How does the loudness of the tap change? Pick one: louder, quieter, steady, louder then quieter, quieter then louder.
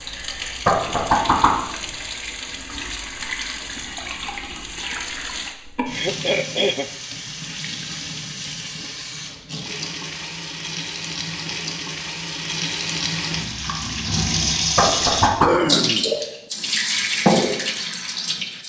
louder.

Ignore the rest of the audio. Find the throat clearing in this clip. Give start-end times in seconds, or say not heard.
5.8-6.9, 15.4-16.1.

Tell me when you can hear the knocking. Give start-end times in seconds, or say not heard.
0.7-1.6, 14.8-15.6.